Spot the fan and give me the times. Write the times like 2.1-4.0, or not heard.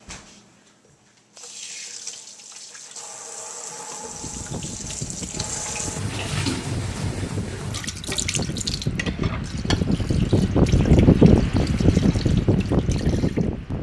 4.0-13.7.